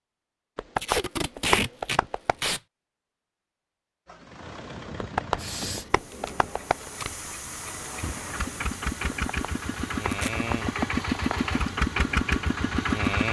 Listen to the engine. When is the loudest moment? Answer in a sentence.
The loudest moment of the engine is at 13 seconds.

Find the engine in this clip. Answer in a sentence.
You can hear the engine from 4.0 to 13.2 s.